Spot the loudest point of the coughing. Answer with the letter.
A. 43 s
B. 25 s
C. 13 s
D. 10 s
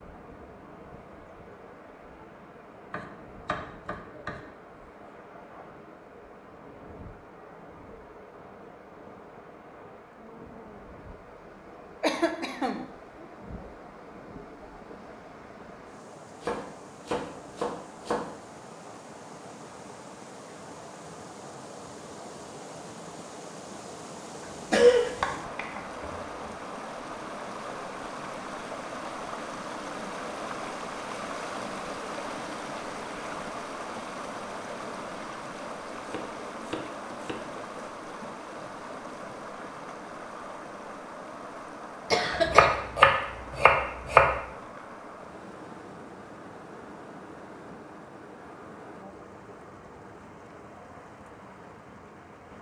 B.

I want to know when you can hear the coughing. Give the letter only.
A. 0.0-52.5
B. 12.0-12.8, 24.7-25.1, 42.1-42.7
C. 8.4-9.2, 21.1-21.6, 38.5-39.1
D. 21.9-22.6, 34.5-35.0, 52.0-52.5
B.